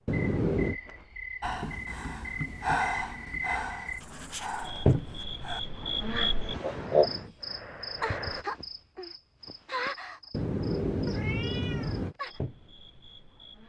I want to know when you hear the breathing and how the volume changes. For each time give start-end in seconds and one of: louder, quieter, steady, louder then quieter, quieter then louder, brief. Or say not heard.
1.4-8.4 quieter.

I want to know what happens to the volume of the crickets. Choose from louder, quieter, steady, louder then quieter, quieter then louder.
louder then quieter.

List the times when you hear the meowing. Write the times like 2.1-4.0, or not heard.
0.1-0.8, 10.3-12.2.